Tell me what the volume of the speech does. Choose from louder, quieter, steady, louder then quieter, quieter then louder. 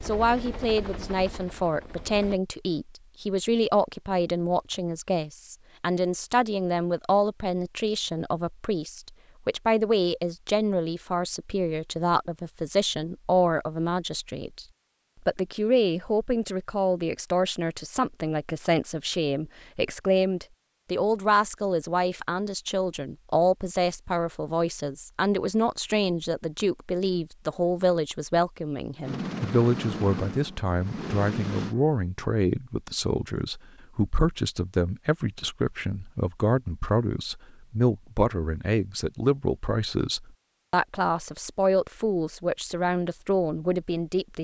steady.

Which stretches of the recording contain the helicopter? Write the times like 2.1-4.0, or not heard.
0.0-2.4, 29.0-31.8.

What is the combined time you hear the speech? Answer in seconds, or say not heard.
44 s.